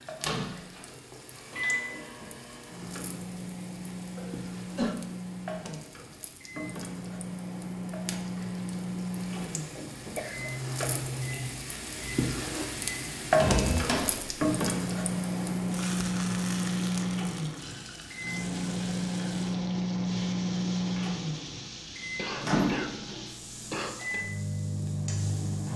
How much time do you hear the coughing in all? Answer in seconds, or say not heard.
4 s.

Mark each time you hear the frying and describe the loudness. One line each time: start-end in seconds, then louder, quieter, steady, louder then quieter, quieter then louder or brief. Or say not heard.
0.0-25.7 louder then quieter.